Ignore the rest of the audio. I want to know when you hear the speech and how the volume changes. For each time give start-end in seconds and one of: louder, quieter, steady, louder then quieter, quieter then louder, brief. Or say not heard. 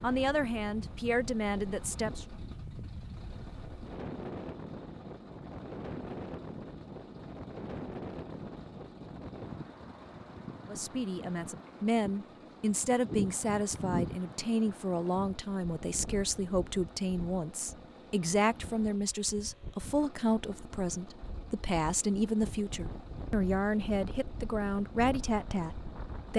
0.0-2.2 brief
10.7-26.3 steady.